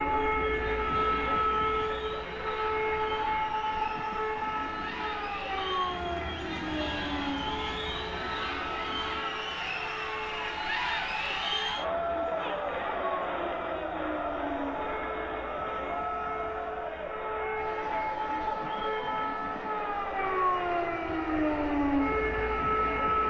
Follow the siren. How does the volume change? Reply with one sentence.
The volume of the siren goes down, then up.